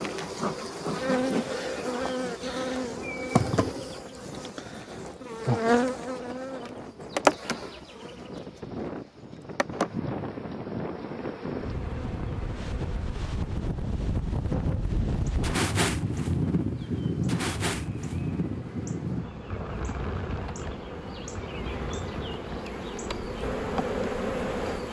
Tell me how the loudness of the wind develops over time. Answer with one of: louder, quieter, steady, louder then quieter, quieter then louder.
louder then quieter.